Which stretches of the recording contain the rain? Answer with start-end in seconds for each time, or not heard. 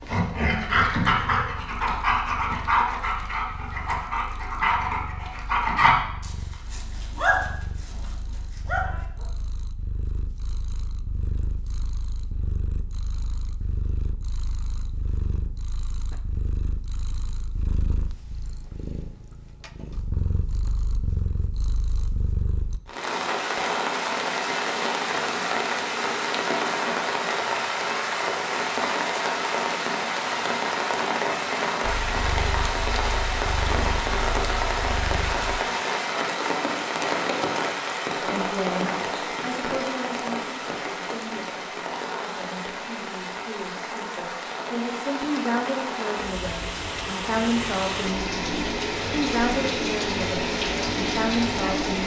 22.9-52.0.